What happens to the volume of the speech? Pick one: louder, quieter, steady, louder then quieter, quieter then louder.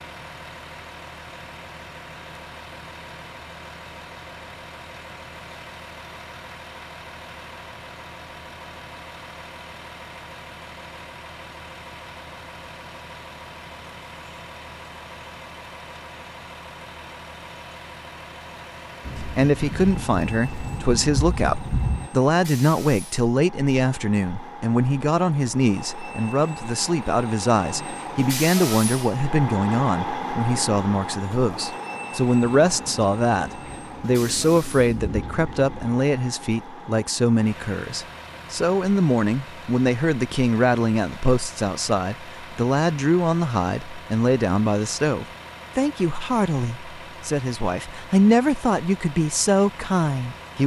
steady.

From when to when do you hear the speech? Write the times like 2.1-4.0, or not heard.
19.1-50.6.